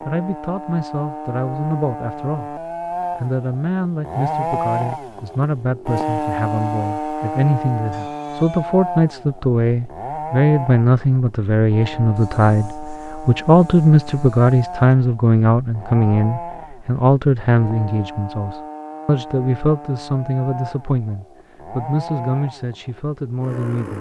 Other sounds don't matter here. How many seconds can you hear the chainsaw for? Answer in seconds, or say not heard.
24 s.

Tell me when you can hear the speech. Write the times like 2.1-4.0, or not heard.
0.1-23.9.